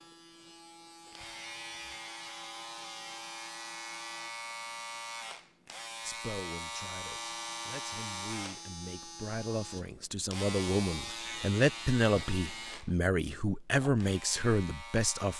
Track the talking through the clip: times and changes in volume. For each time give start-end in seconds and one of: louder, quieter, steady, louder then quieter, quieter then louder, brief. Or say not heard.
6.0-15.3 louder.